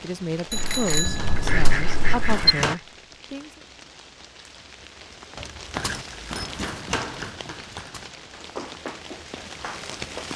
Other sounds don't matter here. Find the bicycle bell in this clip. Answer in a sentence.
You can hear the bicycle bell from 0.5 to 2.5 s and from 5.3 to 6.5 s.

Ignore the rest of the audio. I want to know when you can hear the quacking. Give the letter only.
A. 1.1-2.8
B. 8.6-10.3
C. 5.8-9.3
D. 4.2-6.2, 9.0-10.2
A.